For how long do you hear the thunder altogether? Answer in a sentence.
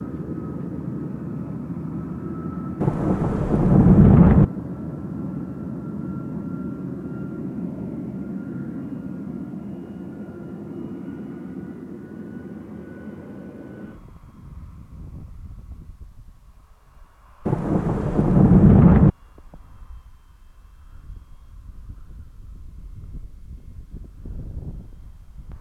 You can hear the thunder for 3 seconds altogether.